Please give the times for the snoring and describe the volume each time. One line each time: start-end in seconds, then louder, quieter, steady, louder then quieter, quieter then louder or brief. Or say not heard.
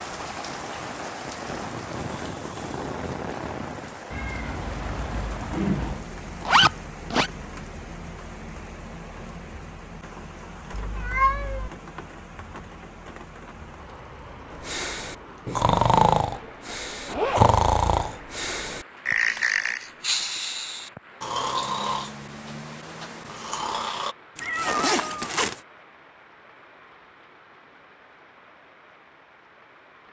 14.5-24.1 quieter.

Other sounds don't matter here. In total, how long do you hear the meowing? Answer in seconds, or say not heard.
4 s.